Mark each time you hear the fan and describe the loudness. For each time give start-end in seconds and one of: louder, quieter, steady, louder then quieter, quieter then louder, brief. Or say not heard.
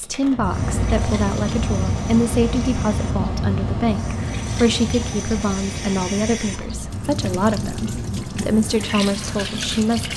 0.0-10.1 quieter.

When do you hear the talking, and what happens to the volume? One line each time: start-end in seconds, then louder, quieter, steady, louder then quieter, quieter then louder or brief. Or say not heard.
0.0-10.1 steady.